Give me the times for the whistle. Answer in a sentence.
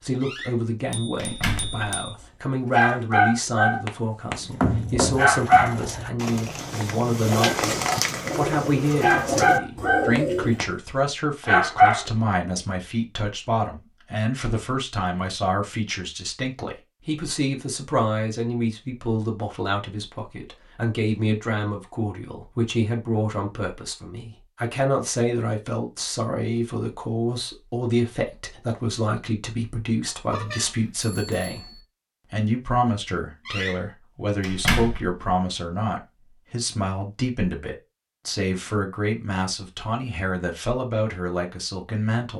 You can't hear the whistle here.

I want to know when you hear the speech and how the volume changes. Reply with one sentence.
You can hear the speech from 0.0 to 42.3 s, at a steady volume.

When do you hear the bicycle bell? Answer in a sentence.
You can hear the bicycle bell from 0.9 to 2.1 s and from 30.3 to 31.8 s.